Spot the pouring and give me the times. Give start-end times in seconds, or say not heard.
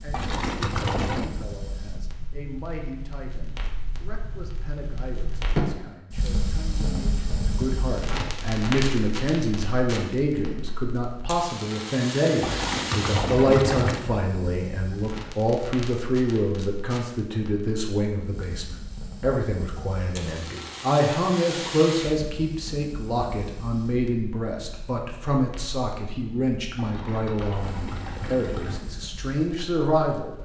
0.1-1.2, 12.4-14.1, 26.8-28.8.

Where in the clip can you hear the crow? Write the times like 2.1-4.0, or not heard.
not heard.